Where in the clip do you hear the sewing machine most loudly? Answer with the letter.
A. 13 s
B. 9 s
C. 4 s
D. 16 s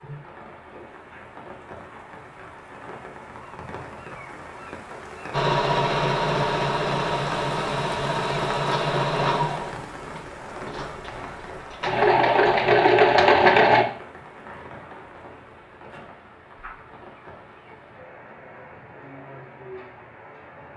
A.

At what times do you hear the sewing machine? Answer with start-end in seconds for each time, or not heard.
5.3-13.8.